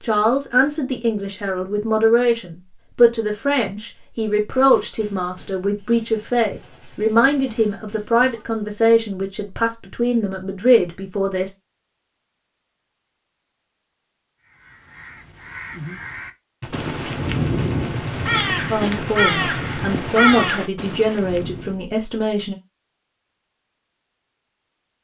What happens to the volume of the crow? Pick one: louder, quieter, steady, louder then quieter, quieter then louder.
louder.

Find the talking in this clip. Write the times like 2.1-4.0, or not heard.
0.0-11.5, 18.7-22.6.